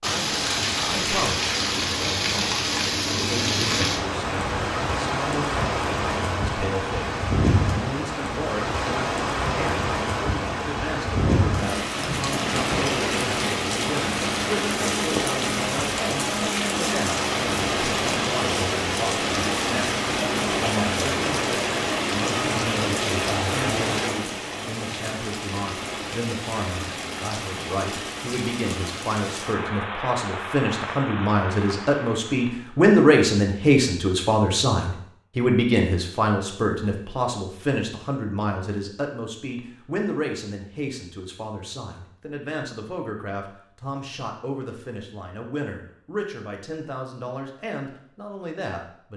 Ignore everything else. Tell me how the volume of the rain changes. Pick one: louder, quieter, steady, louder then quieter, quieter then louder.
quieter.